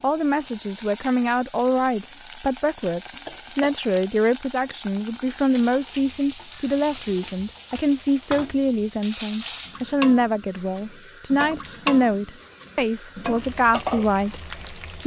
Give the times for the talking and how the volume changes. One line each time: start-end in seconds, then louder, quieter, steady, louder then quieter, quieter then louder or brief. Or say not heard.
0.0-15.0 steady.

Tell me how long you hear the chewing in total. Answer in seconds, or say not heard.
not heard.